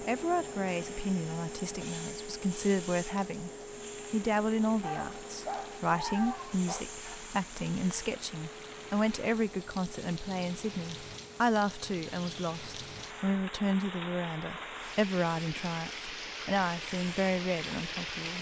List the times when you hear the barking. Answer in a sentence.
You can hear the barking from 4.8 to 6.8 s.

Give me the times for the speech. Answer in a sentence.
The speech can be heard from 0.0 to 3.5 s and from 4.1 to 18.3 s.